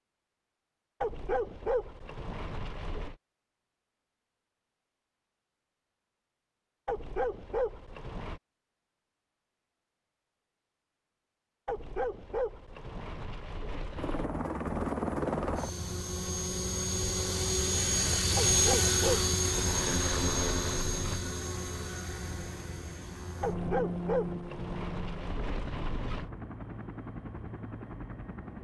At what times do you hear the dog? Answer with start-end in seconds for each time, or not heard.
1.0-3.1, 6.8-8.4, 11.7-14.3, 18.4-21.2, 23.4-26.3.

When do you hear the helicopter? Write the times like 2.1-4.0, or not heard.
13.9-28.5.